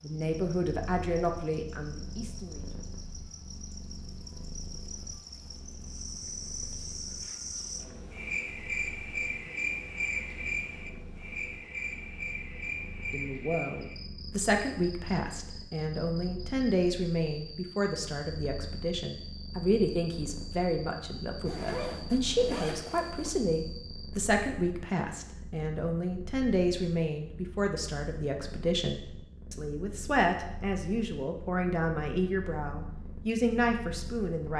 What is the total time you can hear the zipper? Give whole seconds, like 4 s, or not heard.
2 s.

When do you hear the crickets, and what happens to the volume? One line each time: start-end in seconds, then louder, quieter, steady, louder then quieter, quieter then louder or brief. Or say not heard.
0.0-24.1 louder then quieter.